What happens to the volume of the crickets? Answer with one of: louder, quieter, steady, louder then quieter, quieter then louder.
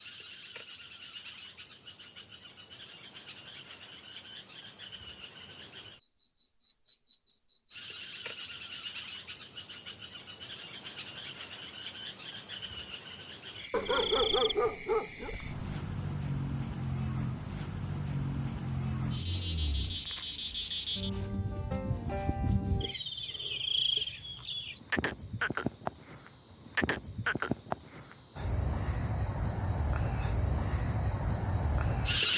louder.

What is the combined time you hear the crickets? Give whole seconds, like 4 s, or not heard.
32 s.